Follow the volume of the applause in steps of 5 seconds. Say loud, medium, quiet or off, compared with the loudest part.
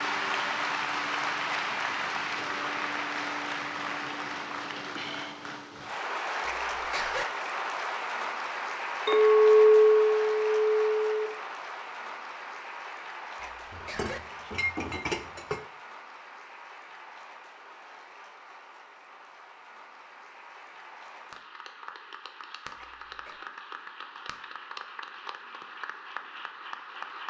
loud, loud, medium, quiet, quiet, medium.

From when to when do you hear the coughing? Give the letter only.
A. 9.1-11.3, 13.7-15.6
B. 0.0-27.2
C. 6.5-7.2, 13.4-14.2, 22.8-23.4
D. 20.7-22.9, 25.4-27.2
C.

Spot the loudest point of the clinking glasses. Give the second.
10 s.